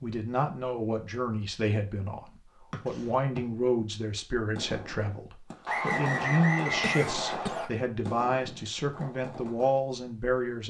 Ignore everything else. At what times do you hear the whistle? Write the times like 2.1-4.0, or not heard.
2.7-3.4, 5.7-7.7.